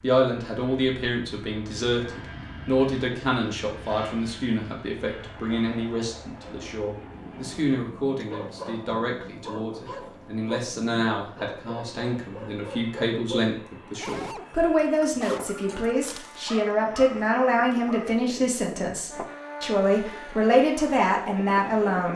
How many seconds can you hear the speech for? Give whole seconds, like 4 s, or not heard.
22 s.